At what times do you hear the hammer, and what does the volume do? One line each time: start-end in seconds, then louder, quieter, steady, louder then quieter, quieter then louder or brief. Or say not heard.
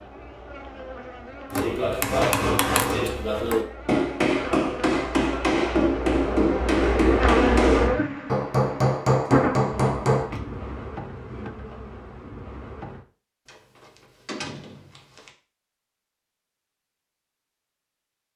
1.5-10.3 steady.